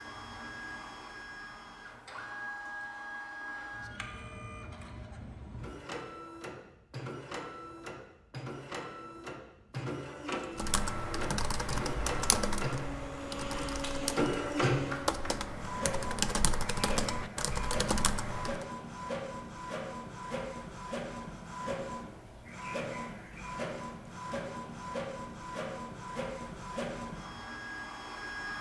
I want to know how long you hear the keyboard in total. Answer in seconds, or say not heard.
8 s.